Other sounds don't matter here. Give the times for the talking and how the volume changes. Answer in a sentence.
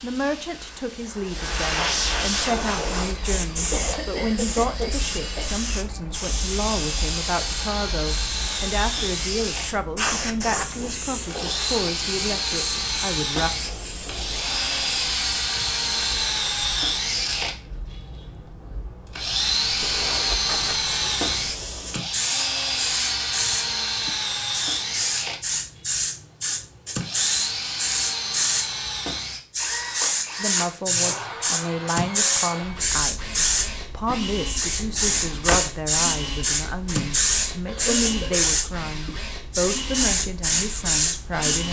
You can hear the talking from 0.0 to 13.5 s, at a steady volume; and from 30.4 to 41.6 s, at a steady volume.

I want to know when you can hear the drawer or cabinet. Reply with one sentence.
The drawer or cabinet can be heard from 34.7 to 35.7 s.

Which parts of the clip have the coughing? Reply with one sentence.
You can hear the coughing from 3.7 to 5.5 s and from 37.6 to 38.5 s.